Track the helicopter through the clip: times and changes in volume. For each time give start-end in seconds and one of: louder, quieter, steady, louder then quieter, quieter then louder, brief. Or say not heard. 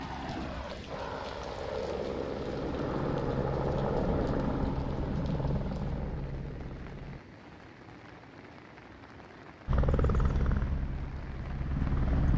0.0-7.2 louder then quieter
9.7-12.3 brief.